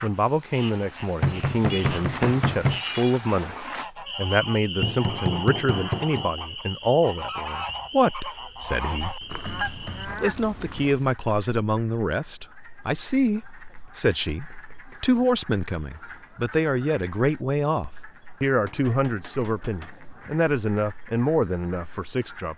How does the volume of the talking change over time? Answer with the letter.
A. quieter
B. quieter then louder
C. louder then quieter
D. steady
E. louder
D.